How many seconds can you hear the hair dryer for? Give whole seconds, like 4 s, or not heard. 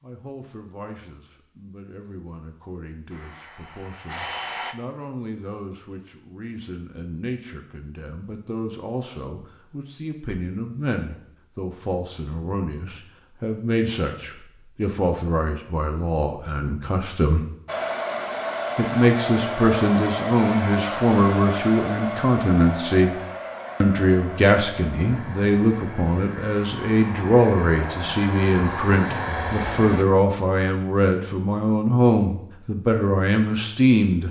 14 s.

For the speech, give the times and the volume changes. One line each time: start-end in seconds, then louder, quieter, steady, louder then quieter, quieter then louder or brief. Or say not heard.
0.0-17.4 louder
18.8-23.1 steady
23.8-34.2 steady.